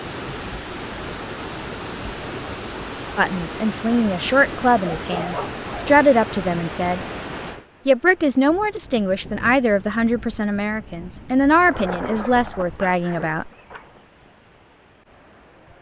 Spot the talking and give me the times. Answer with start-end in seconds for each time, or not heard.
3.1-7.0, 7.8-13.5.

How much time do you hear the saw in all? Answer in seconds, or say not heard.
not heard.